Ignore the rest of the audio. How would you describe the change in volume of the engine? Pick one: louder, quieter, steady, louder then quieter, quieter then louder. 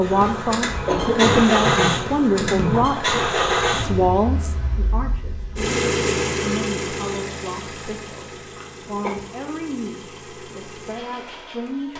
quieter.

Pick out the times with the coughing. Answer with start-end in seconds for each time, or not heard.
0.8-2.9, 8.6-9.2.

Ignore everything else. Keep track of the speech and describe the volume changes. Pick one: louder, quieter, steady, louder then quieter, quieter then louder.
quieter.